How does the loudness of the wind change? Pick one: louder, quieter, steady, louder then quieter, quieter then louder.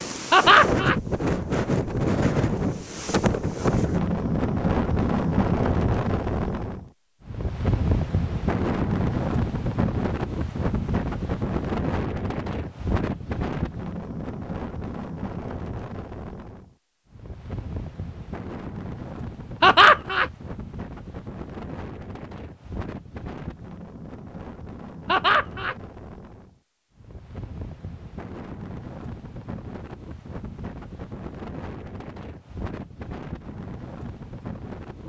quieter.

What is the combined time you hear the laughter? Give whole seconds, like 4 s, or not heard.
2 s.